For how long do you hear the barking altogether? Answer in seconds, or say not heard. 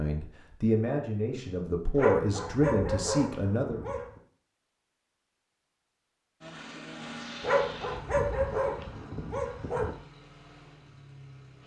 5 s.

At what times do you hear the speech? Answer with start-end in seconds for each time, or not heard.
0.0-3.8.